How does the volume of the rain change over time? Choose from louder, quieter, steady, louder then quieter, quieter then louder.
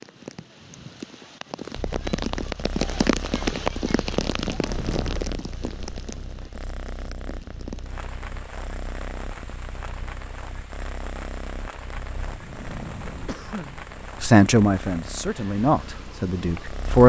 quieter.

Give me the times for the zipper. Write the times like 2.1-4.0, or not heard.
not heard.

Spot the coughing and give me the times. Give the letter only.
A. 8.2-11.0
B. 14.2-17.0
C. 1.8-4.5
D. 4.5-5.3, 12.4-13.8
D.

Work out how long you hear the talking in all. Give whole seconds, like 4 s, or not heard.
3 s.